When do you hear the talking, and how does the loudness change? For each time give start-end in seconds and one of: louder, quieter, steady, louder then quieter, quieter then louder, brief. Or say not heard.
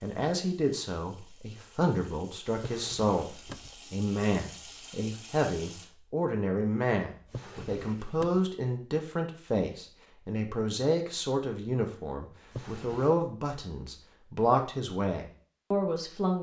0.0-16.3 steady.